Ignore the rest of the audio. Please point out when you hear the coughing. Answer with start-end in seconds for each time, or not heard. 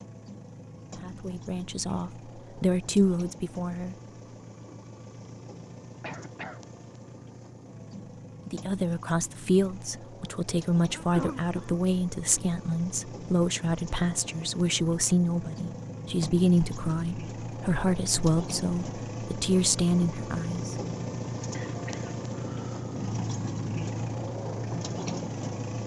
6.0-6.7, 10.9-11.8, 21.5-23.0.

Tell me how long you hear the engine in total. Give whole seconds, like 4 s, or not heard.
26 s.